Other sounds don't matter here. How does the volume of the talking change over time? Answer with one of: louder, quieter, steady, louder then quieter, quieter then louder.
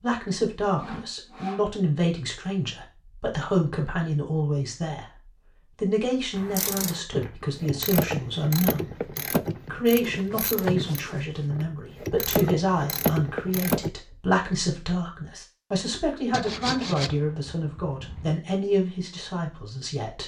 steady.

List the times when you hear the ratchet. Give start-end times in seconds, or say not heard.
6.3-13.9.